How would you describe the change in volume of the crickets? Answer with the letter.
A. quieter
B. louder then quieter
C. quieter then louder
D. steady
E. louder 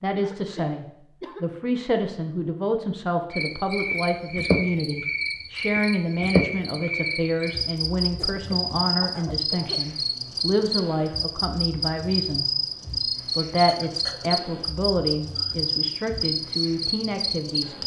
D.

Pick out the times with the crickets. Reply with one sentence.
You can hear the crickets from 3.3 to 17.8 s.